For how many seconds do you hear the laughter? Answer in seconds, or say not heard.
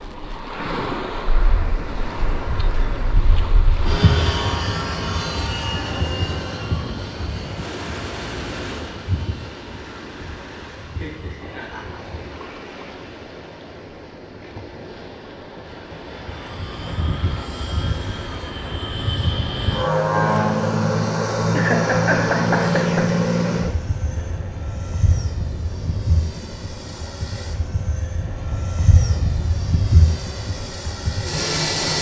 3 s.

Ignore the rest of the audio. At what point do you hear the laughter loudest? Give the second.
22 s.